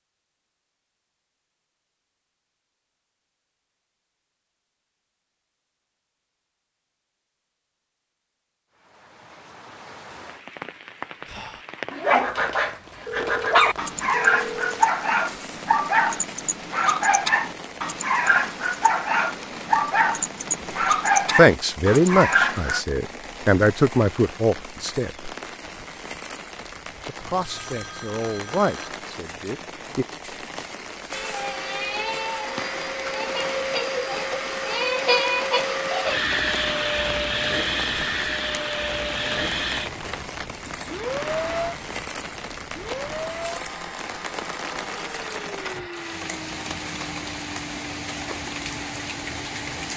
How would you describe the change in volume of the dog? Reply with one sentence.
The volume of the dog stays about the same.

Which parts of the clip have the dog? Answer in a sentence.
You can hear the dog from 11.3 to 22.9 s.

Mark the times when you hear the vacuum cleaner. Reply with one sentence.
The vacuum cleaner can be heard from 31.1 to 49.9 s.